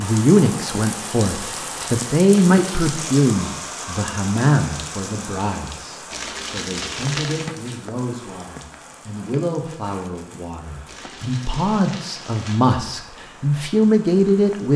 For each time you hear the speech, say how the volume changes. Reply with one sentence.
The speech can be heard from 0.0 to 14.7 s, getting quieter then louder.